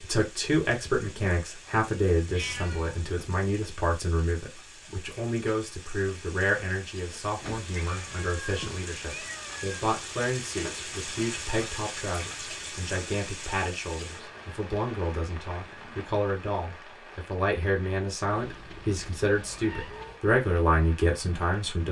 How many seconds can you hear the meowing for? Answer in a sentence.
The meowing can be heard for 5 seconds in total.